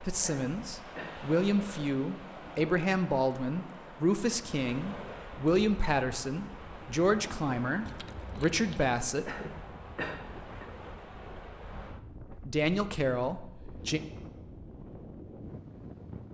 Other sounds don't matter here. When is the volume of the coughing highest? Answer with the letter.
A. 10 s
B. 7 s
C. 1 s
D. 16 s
A.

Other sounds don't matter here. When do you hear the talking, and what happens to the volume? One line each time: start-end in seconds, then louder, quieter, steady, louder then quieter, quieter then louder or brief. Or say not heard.
0.0-9.8 steady
12.4-14.0 brief.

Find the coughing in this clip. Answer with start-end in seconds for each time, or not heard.
0.2-1.2, 9.2-10.7.